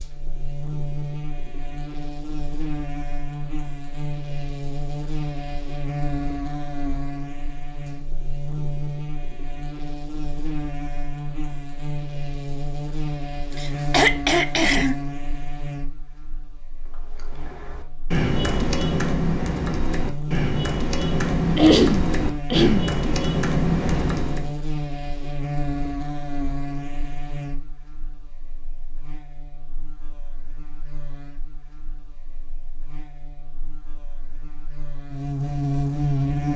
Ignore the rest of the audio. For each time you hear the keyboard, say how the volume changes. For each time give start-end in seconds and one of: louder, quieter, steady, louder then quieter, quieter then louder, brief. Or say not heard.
16.9-24.5 steady.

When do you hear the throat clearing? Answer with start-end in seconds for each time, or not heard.
13.5-14.9, 21.6-22.9.